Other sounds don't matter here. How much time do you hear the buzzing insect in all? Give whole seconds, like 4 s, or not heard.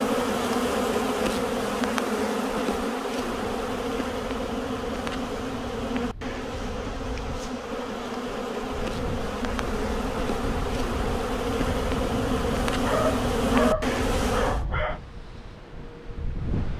15 s.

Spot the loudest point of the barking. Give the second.
14 s.